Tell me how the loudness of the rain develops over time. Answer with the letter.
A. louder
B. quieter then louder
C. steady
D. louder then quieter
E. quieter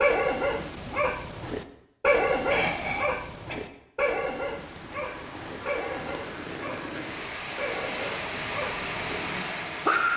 A.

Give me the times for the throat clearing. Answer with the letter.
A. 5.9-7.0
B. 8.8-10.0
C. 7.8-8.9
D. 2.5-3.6
D.